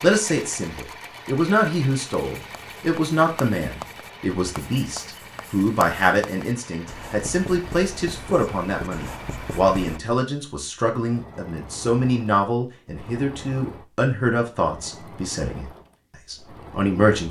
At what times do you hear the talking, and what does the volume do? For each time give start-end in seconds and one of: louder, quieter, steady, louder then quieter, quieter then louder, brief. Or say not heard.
0.0-17.2 steady.